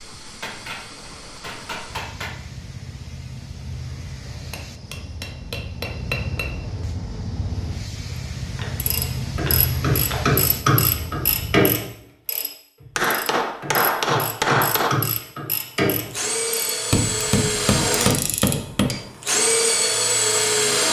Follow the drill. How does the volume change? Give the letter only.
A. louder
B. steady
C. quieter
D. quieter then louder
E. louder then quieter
A.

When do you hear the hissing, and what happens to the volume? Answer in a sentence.
The hissing can be heard from 0.0 to 11.6 s, getting louder.